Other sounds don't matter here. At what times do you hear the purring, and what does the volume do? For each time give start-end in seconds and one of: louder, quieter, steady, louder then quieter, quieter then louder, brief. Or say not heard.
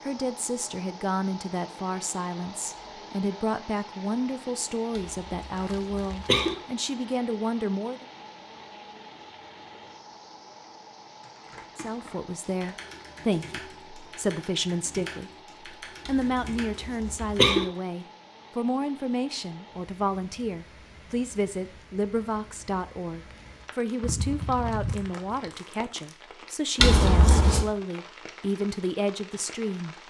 not heard.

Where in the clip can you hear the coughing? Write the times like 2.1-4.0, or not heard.
5.0-6.5, 16.1-17.6, 26.8-27.6.